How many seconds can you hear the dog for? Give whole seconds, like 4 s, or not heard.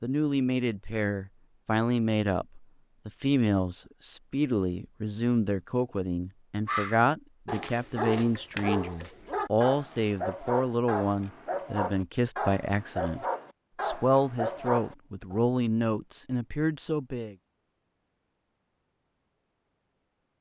9 s.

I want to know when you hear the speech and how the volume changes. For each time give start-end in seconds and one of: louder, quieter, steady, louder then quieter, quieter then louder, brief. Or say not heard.
0.0-17.4 steady.